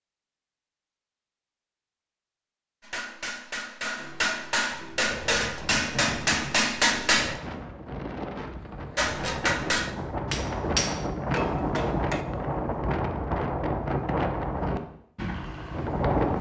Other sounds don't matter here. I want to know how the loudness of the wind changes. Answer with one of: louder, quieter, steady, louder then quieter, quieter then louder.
louder.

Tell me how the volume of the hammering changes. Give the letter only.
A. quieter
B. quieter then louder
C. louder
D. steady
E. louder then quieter
E.